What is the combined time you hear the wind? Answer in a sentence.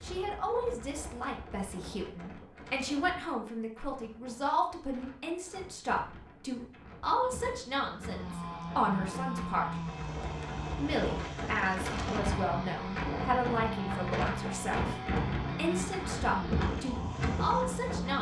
You can hear the wind for 18 seconds altogether.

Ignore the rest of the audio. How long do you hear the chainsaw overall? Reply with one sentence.
You can hear the chainsaw for 10 seconds altogether.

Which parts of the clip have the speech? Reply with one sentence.
The speech can be heard from 0.0 to 9.8 s, from 10.8 to 14.9 s and from 15.6 to 18.1 s.